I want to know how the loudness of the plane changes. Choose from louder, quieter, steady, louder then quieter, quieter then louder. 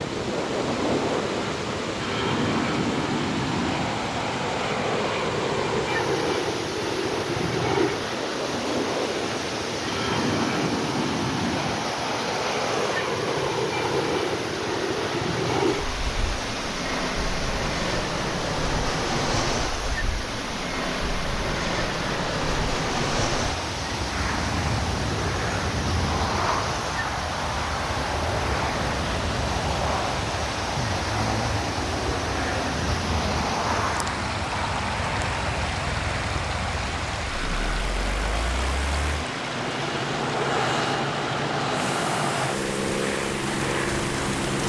steady.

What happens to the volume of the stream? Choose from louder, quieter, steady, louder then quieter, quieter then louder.
steady.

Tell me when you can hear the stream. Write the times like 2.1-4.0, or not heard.
0.0-44.6.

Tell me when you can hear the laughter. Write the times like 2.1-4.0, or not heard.
not heard.